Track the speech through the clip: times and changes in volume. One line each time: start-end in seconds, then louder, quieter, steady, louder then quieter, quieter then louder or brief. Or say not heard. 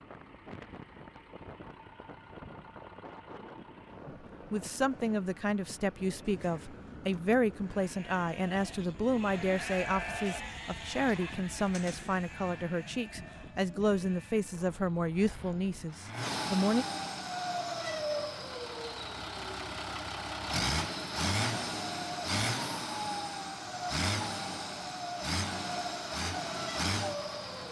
4.0-16.9 steady.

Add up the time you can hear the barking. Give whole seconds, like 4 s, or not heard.
not heard.